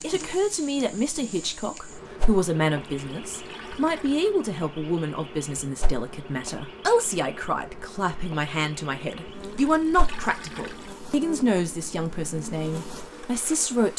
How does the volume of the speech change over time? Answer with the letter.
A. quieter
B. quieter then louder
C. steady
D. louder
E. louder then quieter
C.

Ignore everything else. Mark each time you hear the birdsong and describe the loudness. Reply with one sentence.
You can't hear the birdsong here.